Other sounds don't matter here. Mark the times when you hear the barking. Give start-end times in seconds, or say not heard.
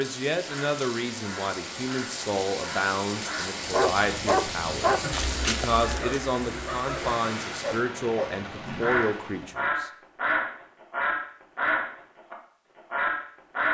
3.6-8.4.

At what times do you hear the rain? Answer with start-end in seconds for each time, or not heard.
0.0-9.6.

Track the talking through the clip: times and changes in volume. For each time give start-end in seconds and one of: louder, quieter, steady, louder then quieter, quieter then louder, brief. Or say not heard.
0.0-9.9 steady.